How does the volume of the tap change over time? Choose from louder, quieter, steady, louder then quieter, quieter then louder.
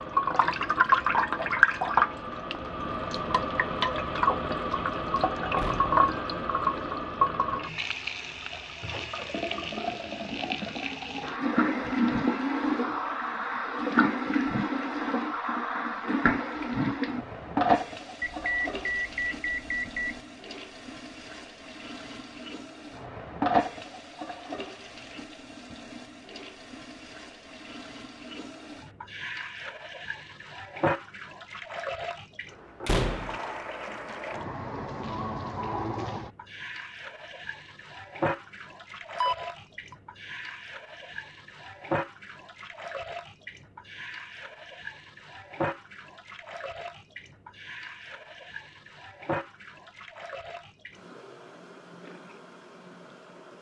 quieter.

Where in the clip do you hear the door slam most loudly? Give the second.
33 s.